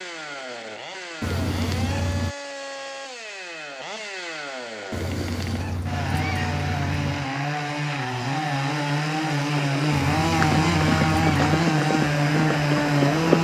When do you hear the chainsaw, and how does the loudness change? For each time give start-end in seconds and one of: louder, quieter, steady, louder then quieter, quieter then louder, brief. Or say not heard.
0.0-13.3 louder.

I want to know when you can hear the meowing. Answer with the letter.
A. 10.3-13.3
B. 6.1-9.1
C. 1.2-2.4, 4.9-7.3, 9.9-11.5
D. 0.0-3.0
C.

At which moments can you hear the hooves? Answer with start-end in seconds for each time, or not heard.
10.3-13.3.